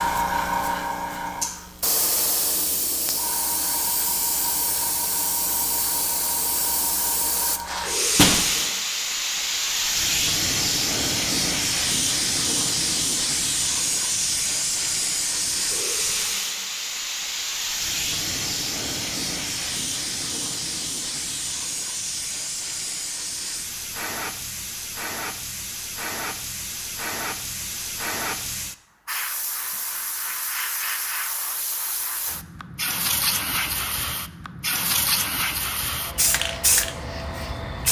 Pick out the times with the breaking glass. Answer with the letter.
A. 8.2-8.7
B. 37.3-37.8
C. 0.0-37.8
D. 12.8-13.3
A.